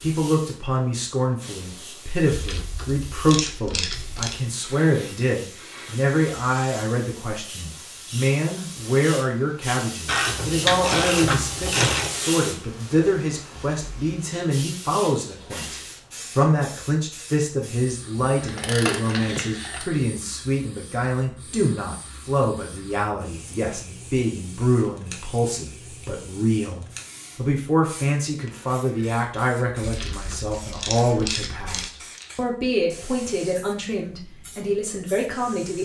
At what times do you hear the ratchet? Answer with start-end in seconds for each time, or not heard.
2.3-4.4, 10.1-12.1, 18.2-19.9, 29.8-31.9.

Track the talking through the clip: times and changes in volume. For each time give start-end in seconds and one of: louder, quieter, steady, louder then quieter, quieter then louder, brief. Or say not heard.
0.0-35.8 steady.